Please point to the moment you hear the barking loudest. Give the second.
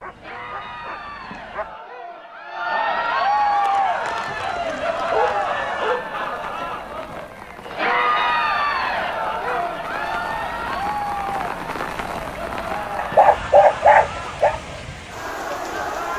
14 s.